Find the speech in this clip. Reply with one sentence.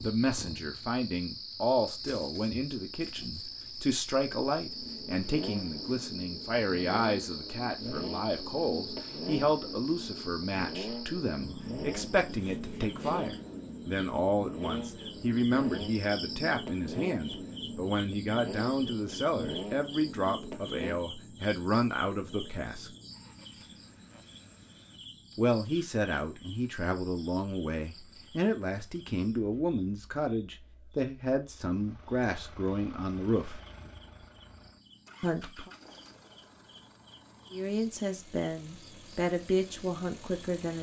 The speech can be heard from 0.0 to 22.9 s, from 25.4 to 33.6 s, from 35.2 to 35.7 s and from 37.5 to 40.7 s.